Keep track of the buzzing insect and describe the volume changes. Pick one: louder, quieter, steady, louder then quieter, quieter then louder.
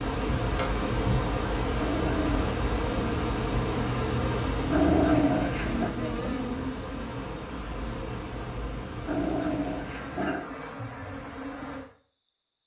quieter.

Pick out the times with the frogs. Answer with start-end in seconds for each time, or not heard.
not heard.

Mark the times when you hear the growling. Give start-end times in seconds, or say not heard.
1.8-2.5, 4.7-6.0, 9.1-10.5.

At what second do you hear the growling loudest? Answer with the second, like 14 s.
5 s.